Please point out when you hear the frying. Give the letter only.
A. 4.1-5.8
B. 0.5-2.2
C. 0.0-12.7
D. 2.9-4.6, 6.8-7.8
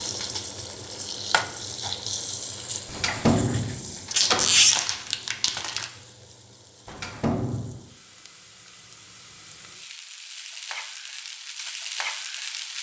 C.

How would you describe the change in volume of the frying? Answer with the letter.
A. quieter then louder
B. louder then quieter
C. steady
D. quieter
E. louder
A.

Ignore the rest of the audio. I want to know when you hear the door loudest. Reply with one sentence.
The loudest moment of the door is at 3 seconds.